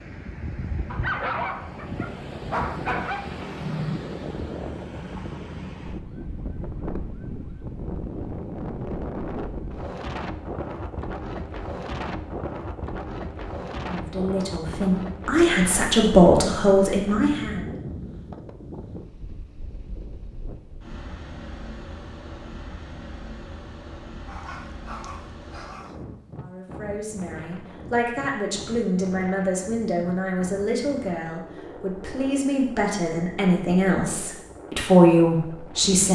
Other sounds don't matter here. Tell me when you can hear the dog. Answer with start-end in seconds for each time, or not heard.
0.9-3.3, 24.2-25.9.